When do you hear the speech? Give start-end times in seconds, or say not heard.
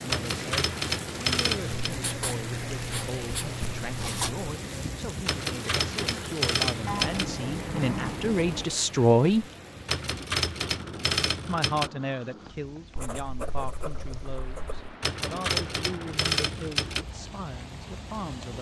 0.0-9.4, 11.4-18.5.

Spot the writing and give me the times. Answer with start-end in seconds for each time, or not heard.
1.6-4.5, 6.8-8.7, 12.9-14.9.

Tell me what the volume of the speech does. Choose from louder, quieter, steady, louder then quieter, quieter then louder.
louder then quieter.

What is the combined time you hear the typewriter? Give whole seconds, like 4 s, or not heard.
8 s.